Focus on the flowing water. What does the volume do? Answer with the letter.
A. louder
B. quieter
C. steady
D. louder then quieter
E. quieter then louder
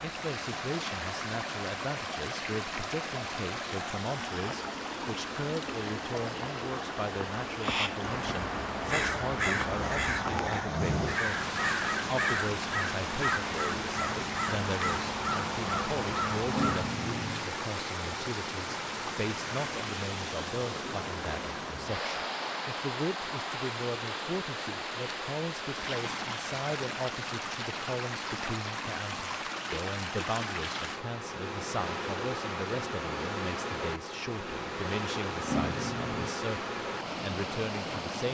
C.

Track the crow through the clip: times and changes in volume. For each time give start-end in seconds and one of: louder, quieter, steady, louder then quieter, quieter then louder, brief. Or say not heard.
7.5-16.9 steady.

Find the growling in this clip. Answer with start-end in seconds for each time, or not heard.
9.7-11.2, 16.4-17.6, 35.4-36.3.